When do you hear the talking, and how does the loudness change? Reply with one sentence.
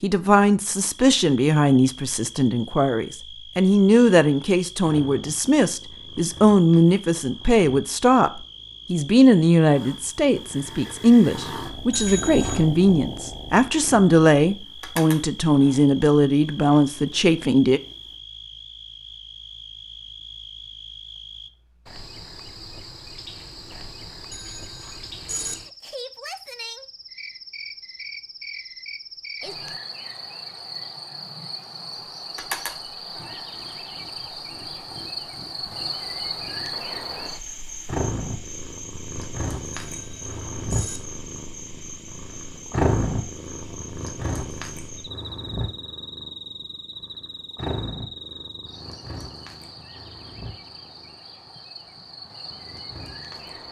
You can hear the talking from 0.0 to 17.8 s, at a steady volume.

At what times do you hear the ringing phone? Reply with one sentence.
You can hear the ringing phone from 11.9 to 12.6 s, from 24.3 to 25.6 s and from 39.8 to 41.0 s.